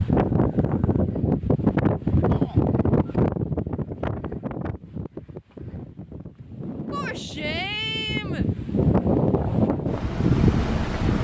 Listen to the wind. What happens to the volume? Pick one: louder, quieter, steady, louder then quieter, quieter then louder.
quieter then louder.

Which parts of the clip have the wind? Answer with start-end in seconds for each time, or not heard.
0.0-11.2.